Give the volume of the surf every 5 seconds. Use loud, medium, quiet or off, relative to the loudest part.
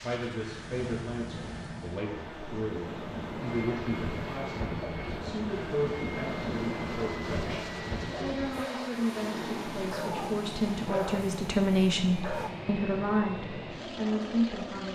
loud, loud, medium.